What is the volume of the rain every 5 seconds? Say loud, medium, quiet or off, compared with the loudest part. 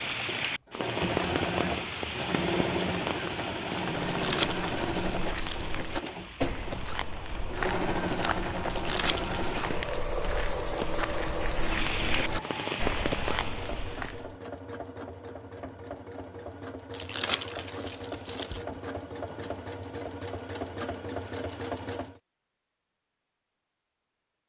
loud, medium, loud, off, off.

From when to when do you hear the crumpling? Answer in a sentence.
The crumpling can be heard from 4.0 to 5.8 s, from 8.7 to 9.6 s and from 16.9 to 18.6 s.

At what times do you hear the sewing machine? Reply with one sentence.
You can hear the sewing machine from 0.1 to 22.2 s.